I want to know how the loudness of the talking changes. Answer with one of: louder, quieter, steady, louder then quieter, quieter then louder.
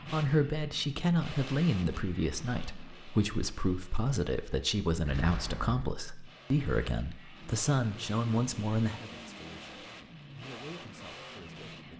quieter.